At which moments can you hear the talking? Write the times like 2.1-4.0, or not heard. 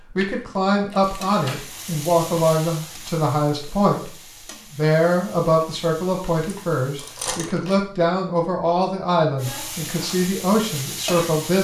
0.1-11.5.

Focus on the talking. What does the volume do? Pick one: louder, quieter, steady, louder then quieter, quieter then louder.
steady.